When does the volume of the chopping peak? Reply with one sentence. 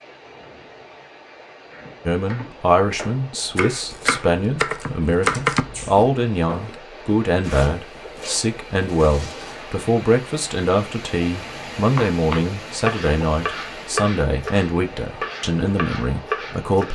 The volume of the chopping peaks at 5 seconds.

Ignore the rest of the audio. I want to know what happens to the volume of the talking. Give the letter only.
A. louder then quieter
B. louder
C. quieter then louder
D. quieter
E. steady
E.